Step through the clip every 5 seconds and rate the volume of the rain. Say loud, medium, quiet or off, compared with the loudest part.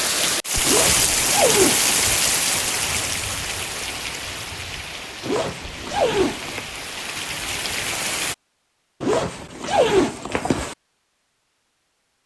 loud, medium, off.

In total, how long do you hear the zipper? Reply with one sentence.
You can hear the zipper for 5 seconds altogether.